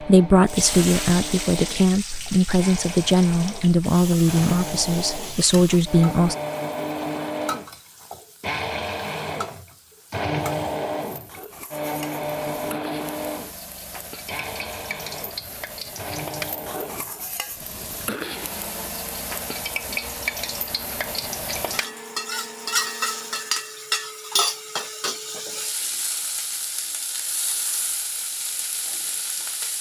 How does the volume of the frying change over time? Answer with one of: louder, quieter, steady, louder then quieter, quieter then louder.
quieter then louder.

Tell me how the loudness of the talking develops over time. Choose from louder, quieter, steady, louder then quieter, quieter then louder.
steady.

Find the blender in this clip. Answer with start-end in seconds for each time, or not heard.
0.0-23.7.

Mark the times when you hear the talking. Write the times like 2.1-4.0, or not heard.
0.0-6.3.